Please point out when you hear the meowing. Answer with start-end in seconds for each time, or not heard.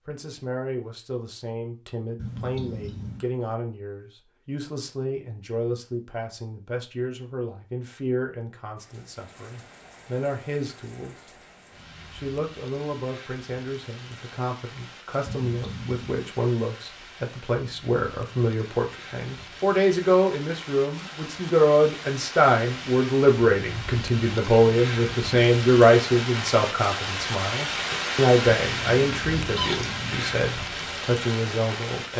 2.1-3.2, 15.2-16.4, 28.4-30.3.